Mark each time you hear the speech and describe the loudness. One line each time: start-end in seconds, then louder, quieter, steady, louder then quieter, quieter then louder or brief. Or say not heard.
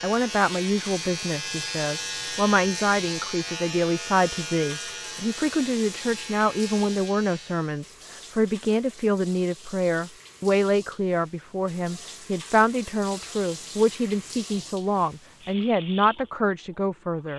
0.0-17.3 steady.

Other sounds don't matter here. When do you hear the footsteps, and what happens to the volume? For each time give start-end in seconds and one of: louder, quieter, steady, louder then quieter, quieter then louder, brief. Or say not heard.
not heard.